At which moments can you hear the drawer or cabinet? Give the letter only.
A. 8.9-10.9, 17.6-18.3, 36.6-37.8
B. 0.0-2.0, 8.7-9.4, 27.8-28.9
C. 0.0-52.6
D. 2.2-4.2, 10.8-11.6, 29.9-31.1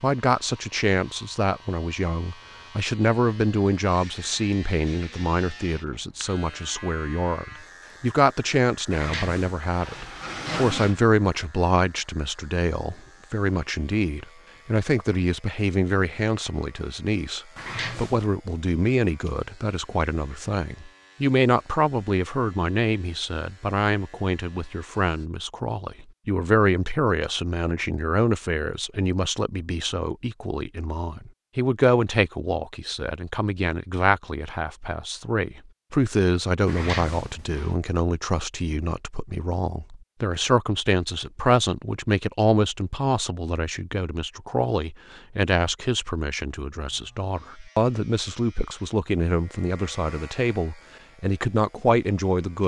A.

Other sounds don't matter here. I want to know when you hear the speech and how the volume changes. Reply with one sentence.
You can hear the speech from 0.0 to 52.6 s, at a steady volume.